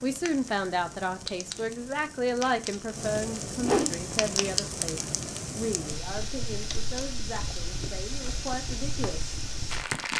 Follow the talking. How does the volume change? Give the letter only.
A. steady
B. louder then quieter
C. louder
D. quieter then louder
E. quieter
E.